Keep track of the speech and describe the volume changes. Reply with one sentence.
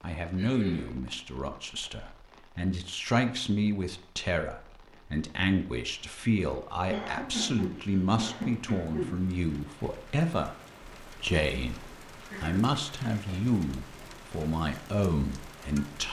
The volume of the speech stays about the same.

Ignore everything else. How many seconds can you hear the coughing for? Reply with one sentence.
You can hear the coughing for 4 seconds altogether.